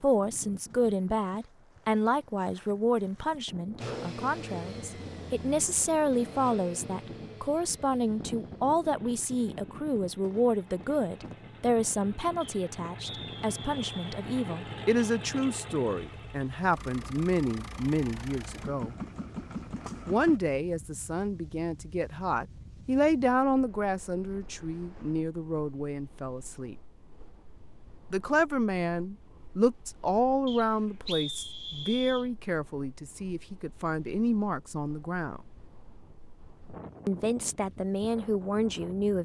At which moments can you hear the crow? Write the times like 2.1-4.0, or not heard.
not heard.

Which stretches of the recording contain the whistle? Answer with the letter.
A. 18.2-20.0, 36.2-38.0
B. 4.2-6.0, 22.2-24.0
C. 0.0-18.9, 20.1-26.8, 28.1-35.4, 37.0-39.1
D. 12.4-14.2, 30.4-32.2
D.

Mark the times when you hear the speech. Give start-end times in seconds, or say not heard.
0.0-18.9, 20.1-26.8, 28.1-35.4, 37.0-39.1.